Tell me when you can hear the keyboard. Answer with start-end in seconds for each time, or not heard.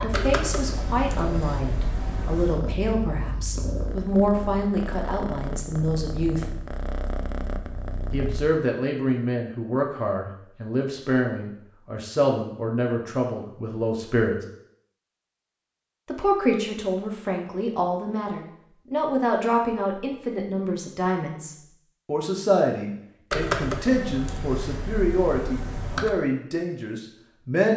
0.1-2.6, 23.3-26.1.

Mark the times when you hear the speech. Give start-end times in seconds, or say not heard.
0.0-6.5, 8.1-14.3, 16.1-27.7.